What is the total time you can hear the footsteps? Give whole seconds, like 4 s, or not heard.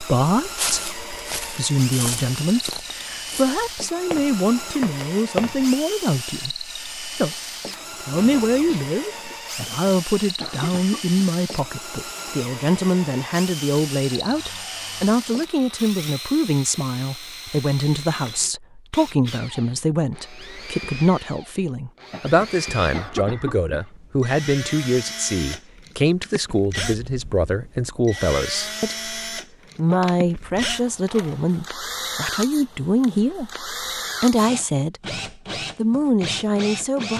5 s.